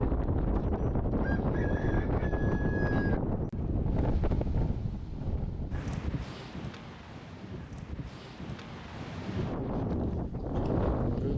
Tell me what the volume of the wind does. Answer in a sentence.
The loudness of the wind goes down, then up.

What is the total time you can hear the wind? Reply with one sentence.
The wind can be heard for 11 seconds in total.